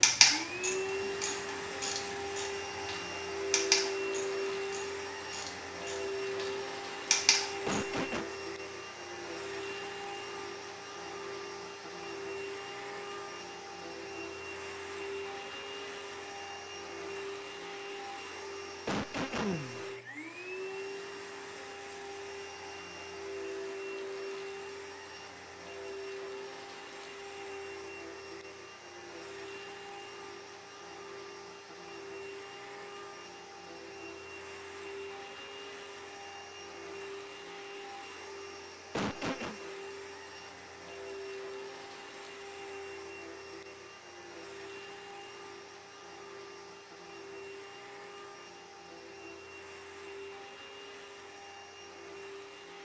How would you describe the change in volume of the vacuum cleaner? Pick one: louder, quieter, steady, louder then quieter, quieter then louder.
quieter.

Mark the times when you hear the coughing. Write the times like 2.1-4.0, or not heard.
7.7-8.2, 18.9-19.9, 38.9-39.6.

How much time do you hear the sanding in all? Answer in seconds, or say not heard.
not heard.